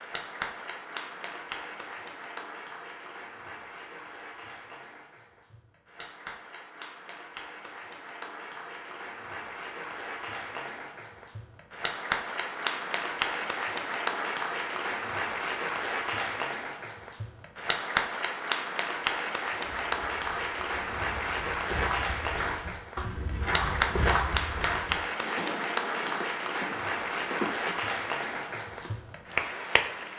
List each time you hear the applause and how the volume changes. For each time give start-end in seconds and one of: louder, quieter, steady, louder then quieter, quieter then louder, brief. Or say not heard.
0.0-30.1 louder.